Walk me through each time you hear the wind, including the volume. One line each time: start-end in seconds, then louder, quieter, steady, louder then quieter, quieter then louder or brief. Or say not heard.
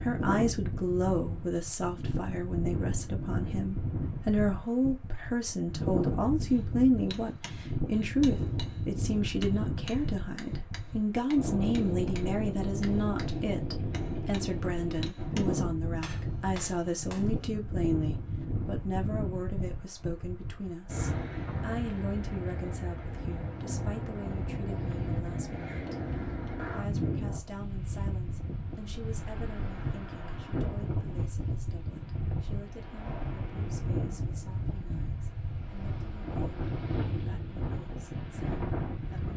0.0-39.3 steady.